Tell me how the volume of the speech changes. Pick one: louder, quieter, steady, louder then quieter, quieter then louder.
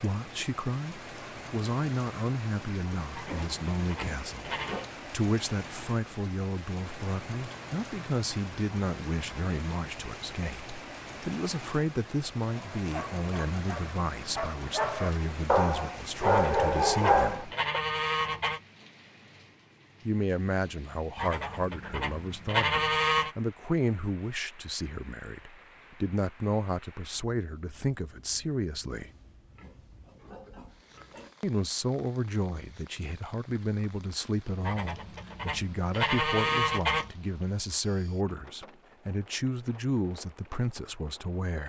steady.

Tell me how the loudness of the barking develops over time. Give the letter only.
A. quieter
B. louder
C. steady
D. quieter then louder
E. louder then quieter
B.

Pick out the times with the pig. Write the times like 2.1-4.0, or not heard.
3.3-4.9, 28.9-31.4.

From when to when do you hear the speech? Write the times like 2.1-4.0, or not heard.
0.0-17.5, 20.1-29.1, 31.4-41.6.